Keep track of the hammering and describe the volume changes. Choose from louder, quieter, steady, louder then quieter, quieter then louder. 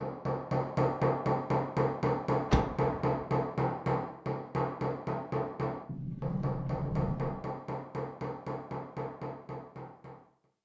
quieter.